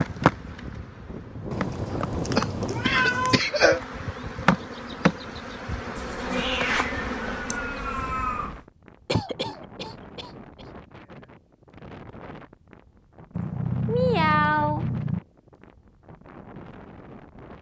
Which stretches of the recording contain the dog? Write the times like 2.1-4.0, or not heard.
not heard.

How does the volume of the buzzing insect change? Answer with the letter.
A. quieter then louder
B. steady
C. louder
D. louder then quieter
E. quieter
C.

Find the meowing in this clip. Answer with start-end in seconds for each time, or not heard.
1.5-3.4, 6.0-8.6, 13.3-15.2.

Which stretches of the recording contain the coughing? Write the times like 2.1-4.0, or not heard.
1.9-3.8, 9.1-10.7.